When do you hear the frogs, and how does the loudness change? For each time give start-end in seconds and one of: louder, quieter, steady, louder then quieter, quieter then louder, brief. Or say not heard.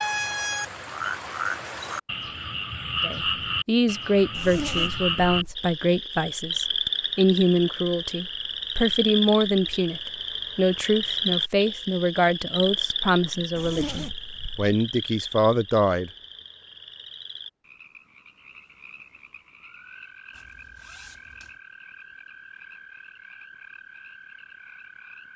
0.0-25.3 quieter.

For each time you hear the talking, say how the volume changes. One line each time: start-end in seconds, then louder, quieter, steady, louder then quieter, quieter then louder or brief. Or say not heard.
3.0-16.1 steady.